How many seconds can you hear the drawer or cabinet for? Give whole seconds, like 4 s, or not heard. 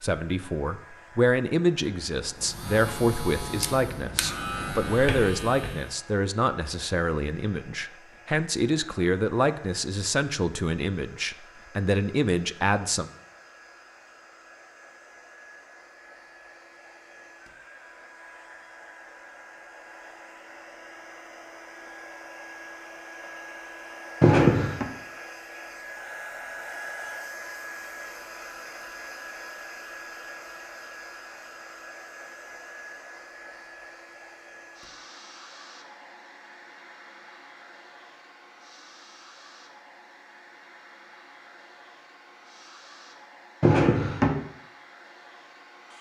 3 s.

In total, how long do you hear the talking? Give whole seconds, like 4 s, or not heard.
13 s.